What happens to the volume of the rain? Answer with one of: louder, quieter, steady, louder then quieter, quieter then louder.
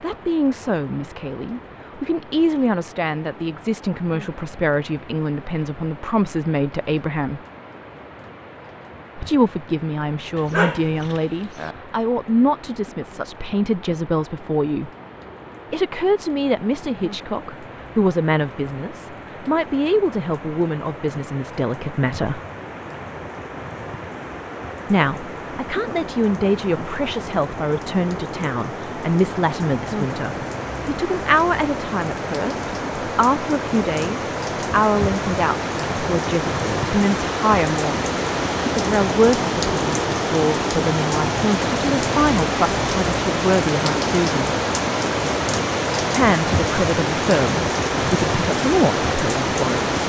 louder.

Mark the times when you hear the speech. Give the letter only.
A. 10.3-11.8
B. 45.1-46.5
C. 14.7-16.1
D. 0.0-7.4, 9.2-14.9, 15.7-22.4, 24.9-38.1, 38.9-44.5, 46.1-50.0
D.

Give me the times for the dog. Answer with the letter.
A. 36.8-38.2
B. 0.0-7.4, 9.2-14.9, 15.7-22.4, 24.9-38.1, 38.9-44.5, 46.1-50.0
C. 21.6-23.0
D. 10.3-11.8
D.